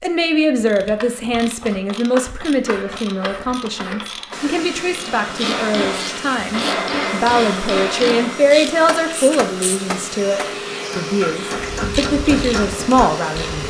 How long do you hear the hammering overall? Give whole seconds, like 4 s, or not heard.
8 s.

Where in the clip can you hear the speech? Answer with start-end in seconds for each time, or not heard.
0.0-13.6.